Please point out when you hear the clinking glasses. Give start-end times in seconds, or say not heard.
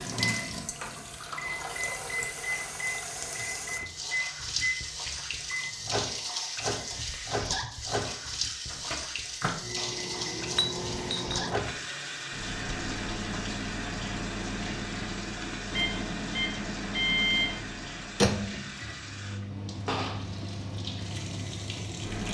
10.5-11.4.